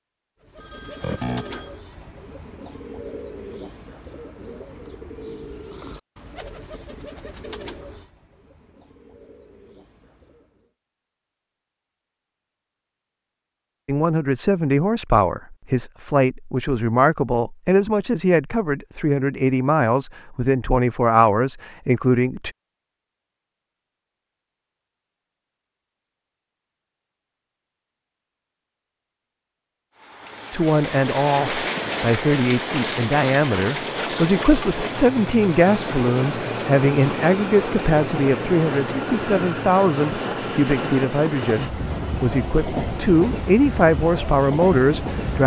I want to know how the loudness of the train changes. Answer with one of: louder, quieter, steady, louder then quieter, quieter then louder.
steady.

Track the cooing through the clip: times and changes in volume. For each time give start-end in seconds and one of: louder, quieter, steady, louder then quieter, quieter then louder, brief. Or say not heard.
0.4-10.7 quieter.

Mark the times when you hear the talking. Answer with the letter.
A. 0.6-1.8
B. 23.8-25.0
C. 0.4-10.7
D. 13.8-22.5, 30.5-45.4
D.